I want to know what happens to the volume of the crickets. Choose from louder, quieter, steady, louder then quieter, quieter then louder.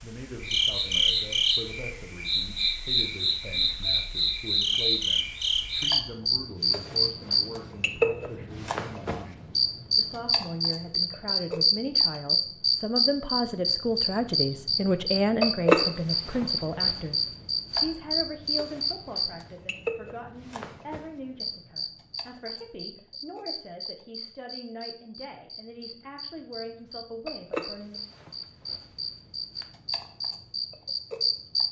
quieter.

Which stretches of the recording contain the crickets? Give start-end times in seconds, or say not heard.
0.0-31.6.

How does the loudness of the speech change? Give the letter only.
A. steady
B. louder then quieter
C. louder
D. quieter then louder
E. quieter
B.